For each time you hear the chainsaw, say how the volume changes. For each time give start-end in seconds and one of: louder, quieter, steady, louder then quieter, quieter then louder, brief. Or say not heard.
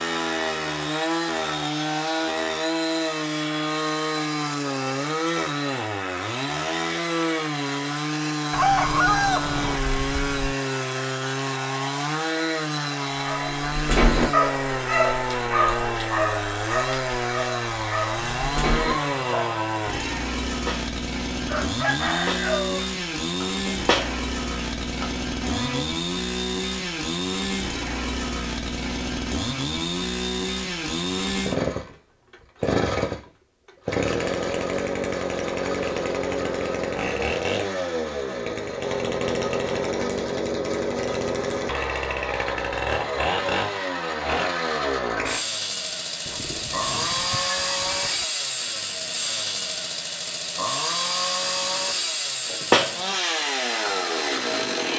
0.0-54.9 steady.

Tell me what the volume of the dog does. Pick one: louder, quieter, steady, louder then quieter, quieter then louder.
quieter.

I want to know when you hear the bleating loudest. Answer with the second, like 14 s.
53 s.